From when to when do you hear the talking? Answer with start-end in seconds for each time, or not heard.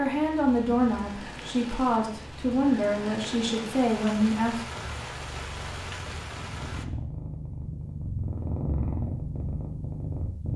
0.0-4.7.